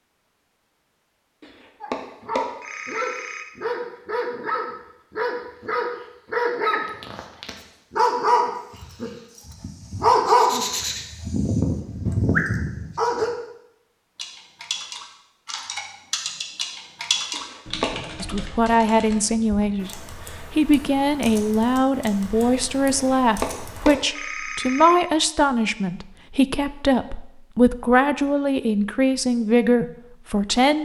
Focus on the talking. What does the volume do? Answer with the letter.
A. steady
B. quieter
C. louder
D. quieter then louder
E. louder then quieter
A.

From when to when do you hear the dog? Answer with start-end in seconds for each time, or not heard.
1.8-13.3.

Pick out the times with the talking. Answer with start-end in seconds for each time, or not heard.
18.2-30.8.